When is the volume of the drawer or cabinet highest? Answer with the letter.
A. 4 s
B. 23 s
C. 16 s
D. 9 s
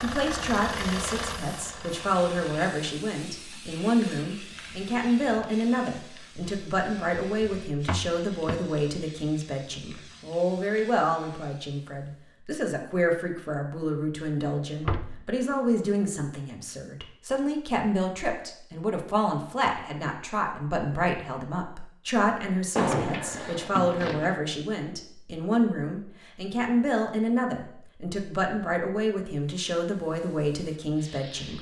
B.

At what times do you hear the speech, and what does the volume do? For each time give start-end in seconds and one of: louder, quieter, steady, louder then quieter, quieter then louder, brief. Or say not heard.
0.0-31.5 steady.